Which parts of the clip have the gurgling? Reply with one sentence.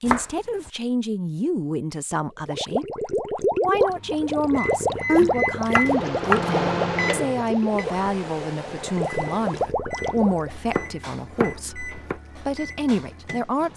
You can hear the gurgling from 2.4 to 10.5 s.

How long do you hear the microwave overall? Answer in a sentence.
You can hear the microwave for 10 seconds altogether.